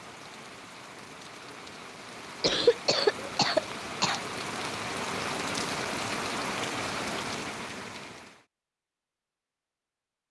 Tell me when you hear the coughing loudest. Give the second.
3 s.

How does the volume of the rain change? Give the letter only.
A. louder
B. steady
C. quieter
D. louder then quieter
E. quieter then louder
A.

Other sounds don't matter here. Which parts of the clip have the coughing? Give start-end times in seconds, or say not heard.
2.4-4.2.